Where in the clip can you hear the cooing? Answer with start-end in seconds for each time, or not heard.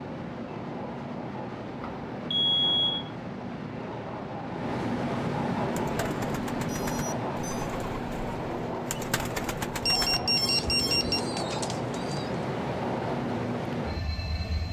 5.7-12.4.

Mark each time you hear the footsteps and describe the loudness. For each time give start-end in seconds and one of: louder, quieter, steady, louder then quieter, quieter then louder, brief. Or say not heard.
not heard.